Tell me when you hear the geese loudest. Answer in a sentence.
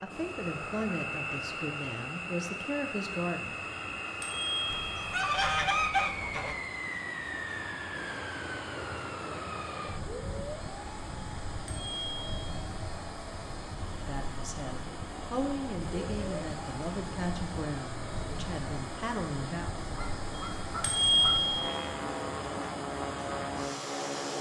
The loudest moment of the geese is at 6 seconds.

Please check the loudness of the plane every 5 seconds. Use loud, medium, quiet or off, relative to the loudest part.
loud, loud, medium, medium, loud.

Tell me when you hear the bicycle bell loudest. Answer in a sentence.
The loudest moment of the bicycle bell is at 21 seconds.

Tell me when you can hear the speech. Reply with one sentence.
You can hear the speech from 0.0 to 3.6 s and from 13.9 to 19.8 s.